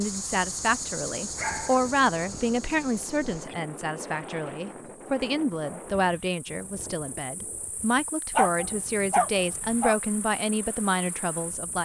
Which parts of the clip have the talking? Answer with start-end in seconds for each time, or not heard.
0.0-11.8.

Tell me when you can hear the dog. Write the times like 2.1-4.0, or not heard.
1.3-2.6, 8.3-9.9.